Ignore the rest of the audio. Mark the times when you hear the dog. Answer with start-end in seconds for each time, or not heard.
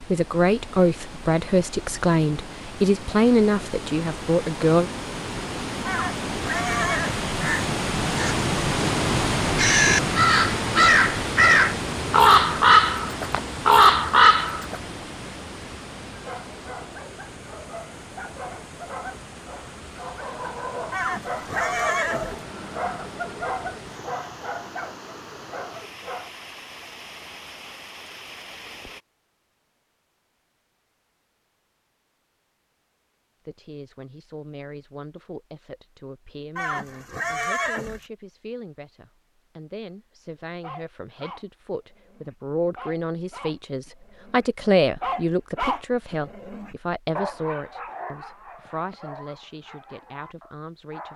16.2-26.3, 40.5-51.1.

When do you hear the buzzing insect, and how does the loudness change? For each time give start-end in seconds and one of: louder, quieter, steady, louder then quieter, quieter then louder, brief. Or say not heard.
not heard.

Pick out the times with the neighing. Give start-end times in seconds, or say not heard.
5.8-7.3, 20.9-22.4, 36.5-38.0.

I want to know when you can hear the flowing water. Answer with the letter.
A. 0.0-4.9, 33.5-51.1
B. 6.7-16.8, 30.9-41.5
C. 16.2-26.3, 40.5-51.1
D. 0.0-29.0
D.